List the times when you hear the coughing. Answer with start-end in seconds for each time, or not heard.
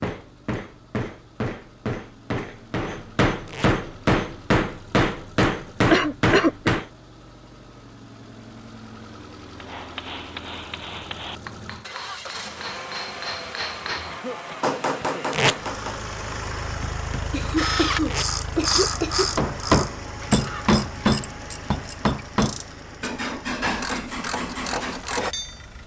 5.9-6.7, 14.1-15.2, 17.3-19.4.